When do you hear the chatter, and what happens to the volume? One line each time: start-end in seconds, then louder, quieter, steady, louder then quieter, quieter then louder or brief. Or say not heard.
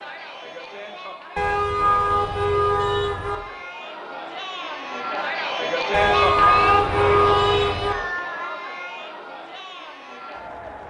0.0-10.8 louder then quieter.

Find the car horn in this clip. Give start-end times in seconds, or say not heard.
1.4-3.4, 5.9-8.0.